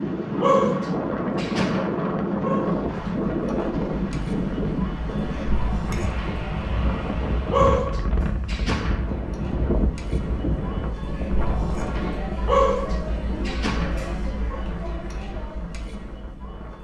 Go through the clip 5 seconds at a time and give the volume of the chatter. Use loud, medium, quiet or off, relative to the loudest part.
medium, loud, loud, medium.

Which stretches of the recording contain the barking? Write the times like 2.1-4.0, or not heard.
0.4-3.1, 7.5-9.1, 12.4-14.6.